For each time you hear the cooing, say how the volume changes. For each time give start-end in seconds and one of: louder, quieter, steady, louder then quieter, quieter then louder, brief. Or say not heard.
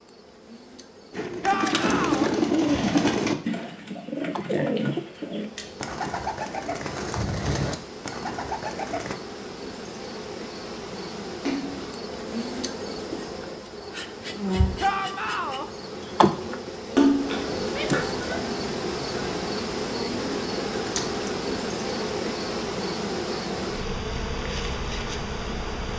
1.1-9.2 quieter.